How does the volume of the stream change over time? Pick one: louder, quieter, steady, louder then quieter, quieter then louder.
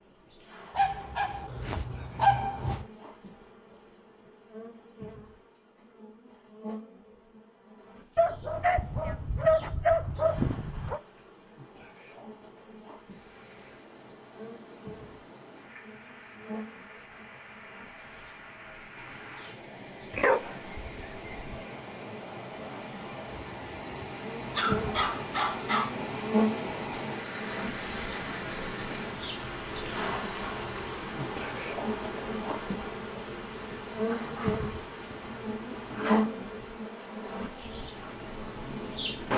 louder then quieter.